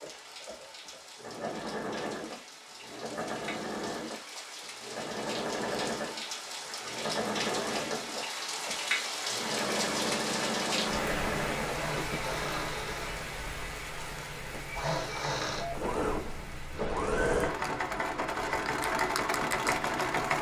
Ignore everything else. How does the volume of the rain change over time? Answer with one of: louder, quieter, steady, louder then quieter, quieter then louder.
louder then quieter.